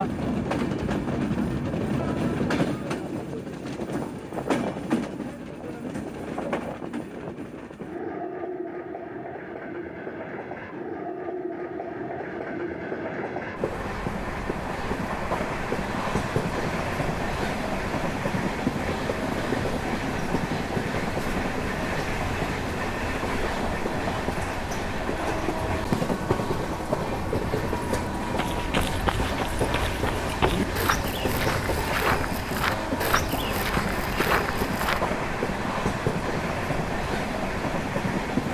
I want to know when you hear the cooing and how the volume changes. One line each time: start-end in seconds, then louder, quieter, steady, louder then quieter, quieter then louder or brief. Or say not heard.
not heard.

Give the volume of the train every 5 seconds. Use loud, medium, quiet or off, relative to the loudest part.
loud, medium, medium, loud, loud, loud, loud, loud.